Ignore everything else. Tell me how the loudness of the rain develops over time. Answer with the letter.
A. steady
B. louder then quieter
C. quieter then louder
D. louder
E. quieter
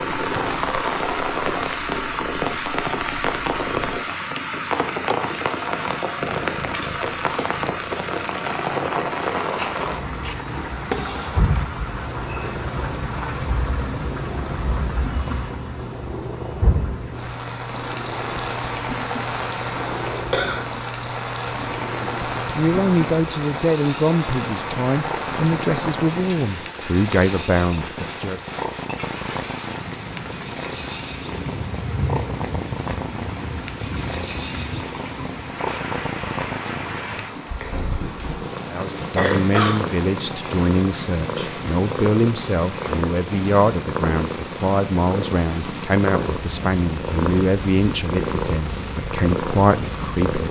E.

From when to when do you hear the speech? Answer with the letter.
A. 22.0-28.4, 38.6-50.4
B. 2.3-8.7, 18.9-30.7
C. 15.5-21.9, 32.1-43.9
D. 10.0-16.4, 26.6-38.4
A.